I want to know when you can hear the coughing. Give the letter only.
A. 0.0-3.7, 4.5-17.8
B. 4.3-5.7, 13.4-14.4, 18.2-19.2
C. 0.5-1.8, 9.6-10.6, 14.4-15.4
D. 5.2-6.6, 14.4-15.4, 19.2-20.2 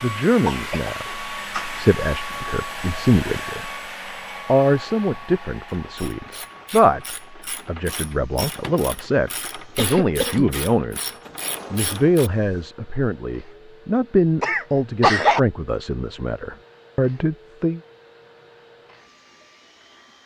C.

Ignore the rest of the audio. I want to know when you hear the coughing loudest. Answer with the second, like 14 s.
15 s.